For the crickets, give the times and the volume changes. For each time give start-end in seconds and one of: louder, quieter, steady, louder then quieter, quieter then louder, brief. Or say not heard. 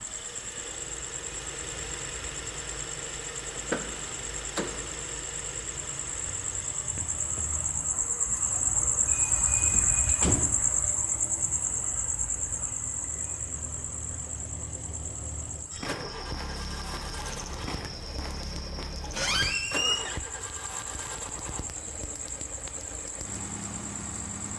0.0-24.5 louder then quieter.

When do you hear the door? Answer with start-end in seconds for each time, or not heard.
3.5-5.0, 9.7-10.7, 19.1-20.2.